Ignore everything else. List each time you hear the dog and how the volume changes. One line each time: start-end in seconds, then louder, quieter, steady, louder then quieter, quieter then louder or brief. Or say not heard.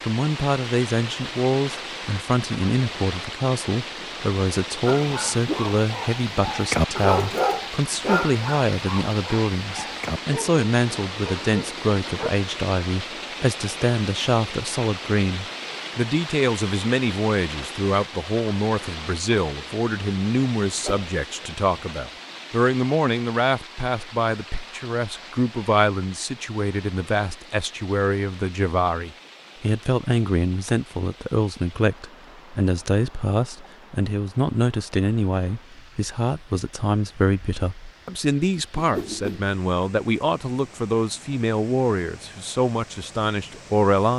4.8-12.3 louder then quieter.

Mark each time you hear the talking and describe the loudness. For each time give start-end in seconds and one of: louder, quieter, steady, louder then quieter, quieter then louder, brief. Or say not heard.
0.1-44.1 steady.